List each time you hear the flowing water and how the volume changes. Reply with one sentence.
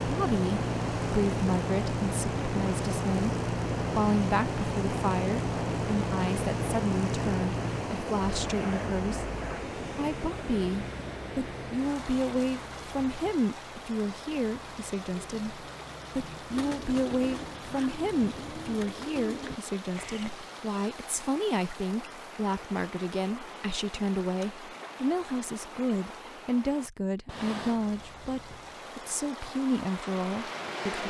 The flowing water can be heard from 0.0 to 30.8 s, getting quieter.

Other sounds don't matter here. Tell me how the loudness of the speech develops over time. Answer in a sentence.
The loudness of the speech stays about the same.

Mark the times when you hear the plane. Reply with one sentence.
You can hear the plane from 0.0 to 18.9 s and from 27.7 to 31.0 s.